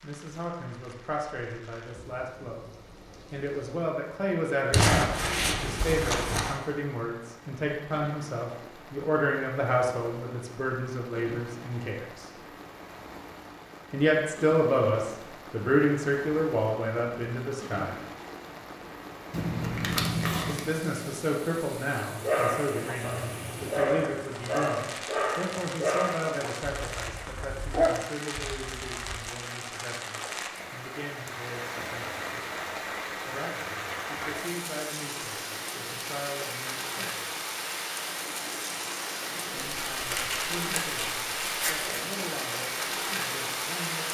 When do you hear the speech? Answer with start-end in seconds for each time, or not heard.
0.0-2.7, 3.3-12.2, 13.9-17.9, 20.4-32.5, 33.2-37.2, 39.4-44.1.